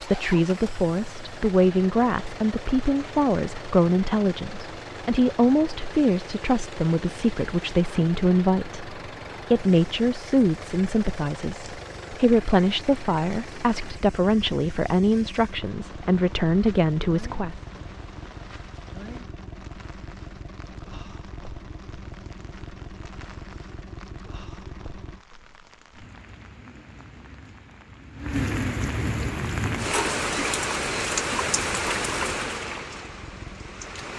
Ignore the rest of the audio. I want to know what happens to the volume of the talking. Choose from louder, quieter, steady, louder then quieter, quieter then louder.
steady.